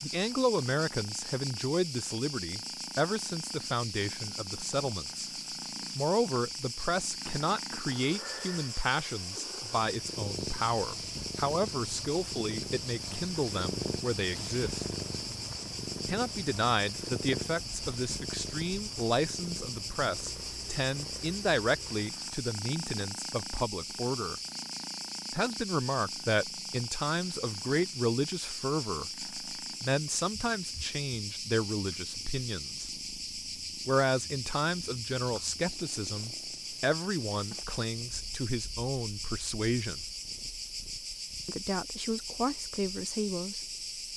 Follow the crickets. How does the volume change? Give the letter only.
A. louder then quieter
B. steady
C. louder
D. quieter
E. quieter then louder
B.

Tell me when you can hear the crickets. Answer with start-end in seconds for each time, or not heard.
0.0-44.1.